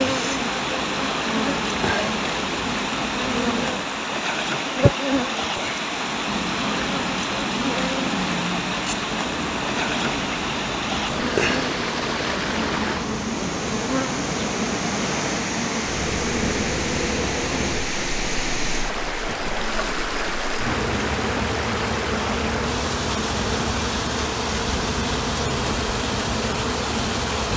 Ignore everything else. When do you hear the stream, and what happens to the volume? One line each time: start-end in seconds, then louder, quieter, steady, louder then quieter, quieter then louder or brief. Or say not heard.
0.0-27.5 steady.